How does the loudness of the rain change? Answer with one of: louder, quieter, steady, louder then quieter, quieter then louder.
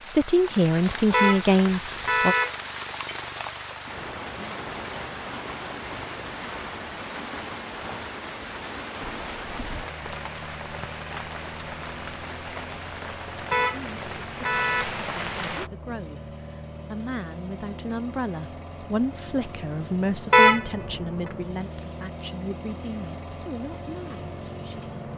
steady.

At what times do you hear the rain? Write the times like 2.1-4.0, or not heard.
0.0-15.7.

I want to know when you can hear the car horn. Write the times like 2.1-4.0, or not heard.
1.1-2.5, 13.5-14.9, 20.3-20.9.